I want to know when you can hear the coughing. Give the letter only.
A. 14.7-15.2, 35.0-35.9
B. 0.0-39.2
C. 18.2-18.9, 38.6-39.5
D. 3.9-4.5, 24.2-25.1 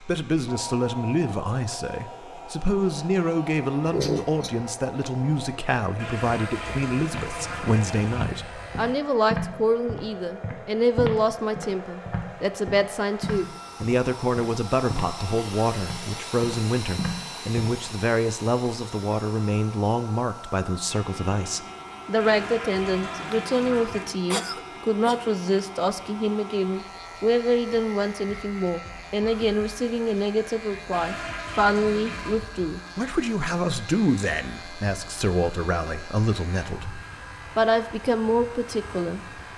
D.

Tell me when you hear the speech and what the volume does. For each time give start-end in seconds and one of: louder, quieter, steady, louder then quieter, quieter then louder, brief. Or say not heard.
0.0-39.2 steady.